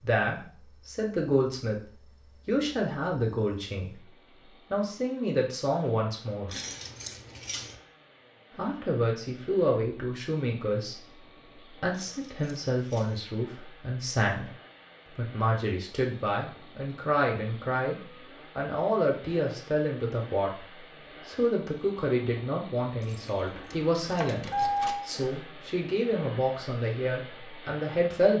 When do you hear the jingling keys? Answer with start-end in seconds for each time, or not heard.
6.5-7.8, 11.9-13.2, 23.0-25.1.